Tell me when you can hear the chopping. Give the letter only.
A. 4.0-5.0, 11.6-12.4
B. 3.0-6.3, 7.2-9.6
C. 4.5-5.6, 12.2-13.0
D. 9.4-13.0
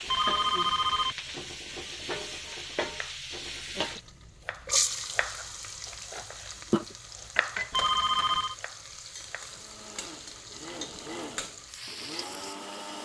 B.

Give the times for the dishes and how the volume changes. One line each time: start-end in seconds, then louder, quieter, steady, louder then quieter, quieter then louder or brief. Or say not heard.
not heard.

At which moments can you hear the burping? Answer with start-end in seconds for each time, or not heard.
not heard.